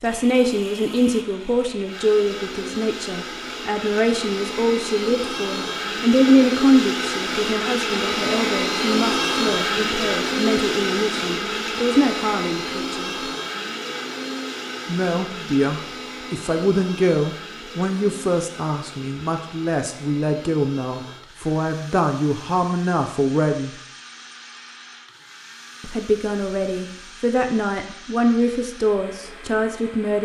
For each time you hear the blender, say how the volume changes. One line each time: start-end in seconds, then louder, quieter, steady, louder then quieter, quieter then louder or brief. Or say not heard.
0.0-30.2 louder then quieter.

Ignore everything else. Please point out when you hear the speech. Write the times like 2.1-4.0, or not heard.
0.0-13.2, 14.8-23.7, 25.8-30.2.